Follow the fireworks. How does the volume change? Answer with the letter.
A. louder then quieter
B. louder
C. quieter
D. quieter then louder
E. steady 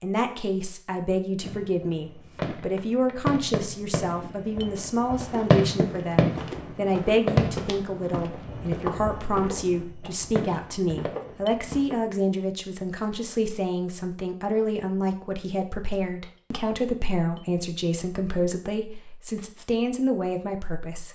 A.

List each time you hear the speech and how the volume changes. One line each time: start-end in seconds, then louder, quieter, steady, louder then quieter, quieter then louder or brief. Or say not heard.
0.0-21.1 steady.